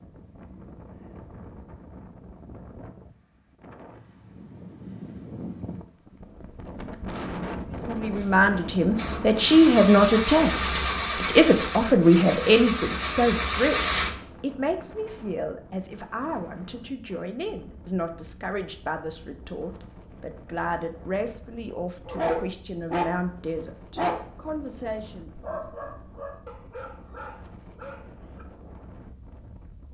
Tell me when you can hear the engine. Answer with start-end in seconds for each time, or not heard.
8.2-14.2.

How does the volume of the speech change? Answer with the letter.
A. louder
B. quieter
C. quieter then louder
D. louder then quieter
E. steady
B.